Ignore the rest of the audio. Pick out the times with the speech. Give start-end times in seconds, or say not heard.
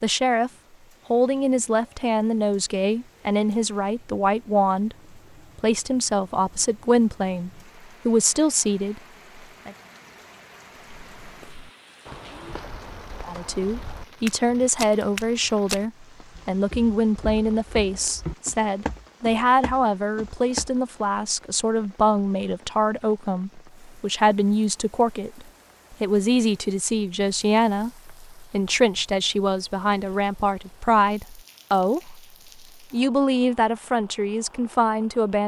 0.0-0.5, 1.1-5.0, 5.5-9.0, 13.2-32.2, 32.9-35.4.